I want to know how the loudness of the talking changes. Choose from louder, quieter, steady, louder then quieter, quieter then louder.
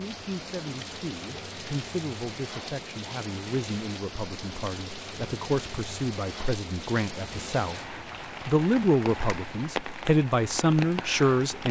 louder.